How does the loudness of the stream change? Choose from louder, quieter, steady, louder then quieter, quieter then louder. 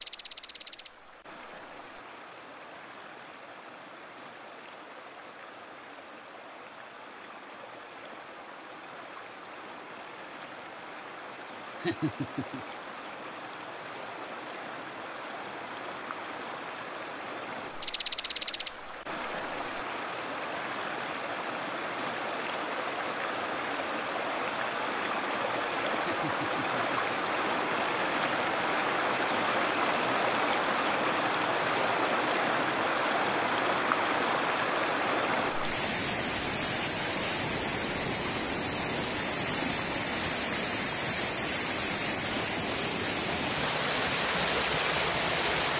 louder.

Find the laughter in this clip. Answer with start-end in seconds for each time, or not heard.
11.8-12.7, 26.0-27.2.